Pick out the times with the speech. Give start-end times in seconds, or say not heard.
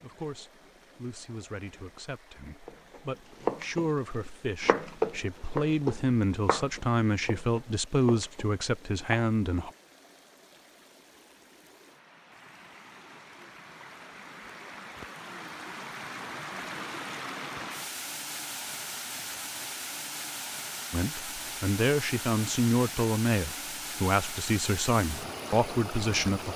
0.0-9.7, 20.9-26.5.